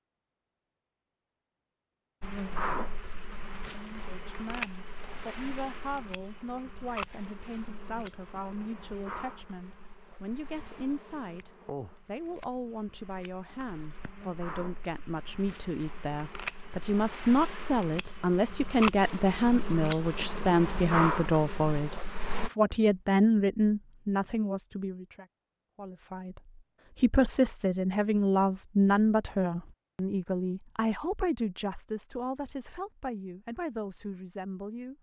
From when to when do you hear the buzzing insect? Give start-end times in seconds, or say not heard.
2.2-22.5.